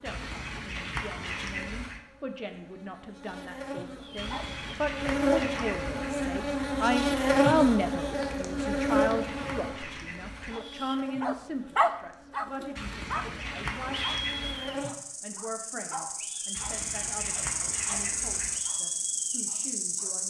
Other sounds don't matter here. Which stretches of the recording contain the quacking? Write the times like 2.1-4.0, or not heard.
0.1-2.0, 4.2-6.2, 8.6-10.6, 12.8-14.7, 16.5-18.6.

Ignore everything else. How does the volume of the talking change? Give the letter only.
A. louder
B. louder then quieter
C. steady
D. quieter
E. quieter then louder
B.